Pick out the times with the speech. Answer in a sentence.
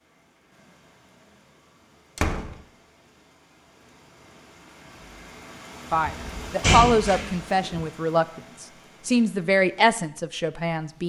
You can hear the speech from 5.9 to 11.0 s.